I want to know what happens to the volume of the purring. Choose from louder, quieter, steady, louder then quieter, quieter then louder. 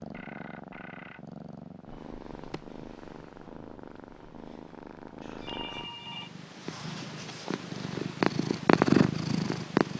louder.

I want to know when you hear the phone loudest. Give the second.
6 s.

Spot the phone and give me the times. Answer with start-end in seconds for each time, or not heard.
0.1-1.3, 5.4-6.3.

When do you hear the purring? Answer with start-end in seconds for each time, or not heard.
0.0-9.9.